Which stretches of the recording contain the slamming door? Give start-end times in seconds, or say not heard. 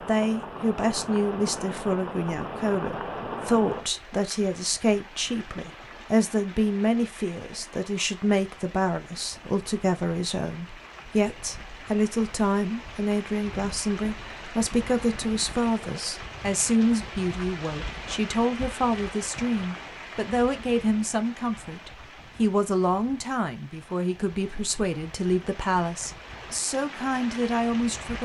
not heard.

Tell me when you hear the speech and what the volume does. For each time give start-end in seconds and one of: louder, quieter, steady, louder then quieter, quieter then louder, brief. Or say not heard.
0.1-28.1 steady.